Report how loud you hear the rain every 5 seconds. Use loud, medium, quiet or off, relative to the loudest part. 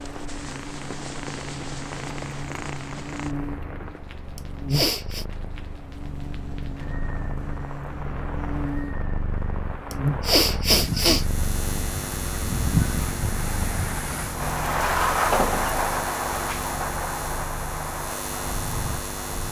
quiet, quiet, loud, loud.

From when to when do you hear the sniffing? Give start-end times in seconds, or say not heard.
4.3-5.2, 9.9-11.2.